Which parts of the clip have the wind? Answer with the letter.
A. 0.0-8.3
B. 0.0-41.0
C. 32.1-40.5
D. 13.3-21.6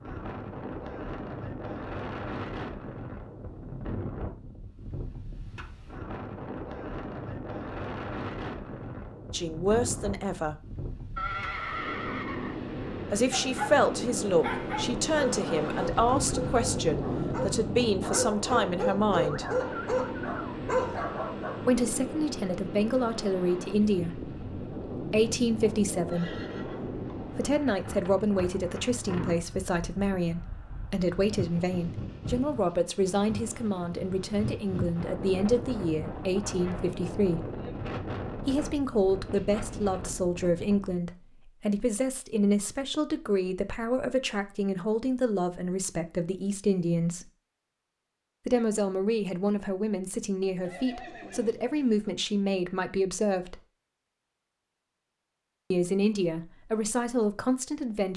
B.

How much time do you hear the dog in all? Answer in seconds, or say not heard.
8 s.